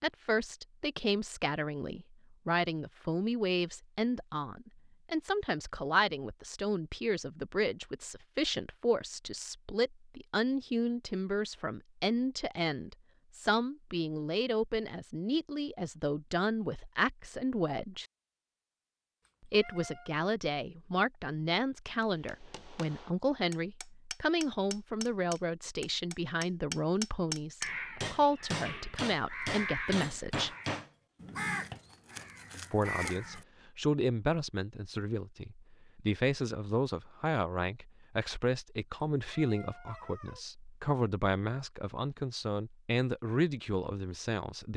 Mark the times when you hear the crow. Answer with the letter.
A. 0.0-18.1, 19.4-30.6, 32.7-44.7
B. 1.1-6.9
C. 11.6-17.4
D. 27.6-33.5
D.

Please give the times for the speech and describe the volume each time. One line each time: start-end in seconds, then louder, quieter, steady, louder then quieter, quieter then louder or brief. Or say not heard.
0.0-18.1 steady
19.4-30.6 steady
32.7-44.7 steady.